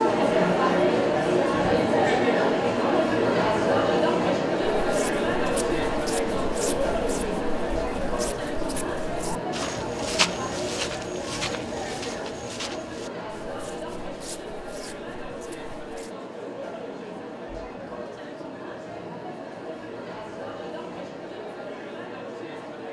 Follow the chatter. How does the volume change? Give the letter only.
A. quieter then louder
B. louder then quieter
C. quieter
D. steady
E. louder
C.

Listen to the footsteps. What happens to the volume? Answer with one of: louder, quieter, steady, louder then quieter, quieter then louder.
louder then quieter.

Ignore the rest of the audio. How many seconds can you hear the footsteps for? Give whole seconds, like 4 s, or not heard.
11 s.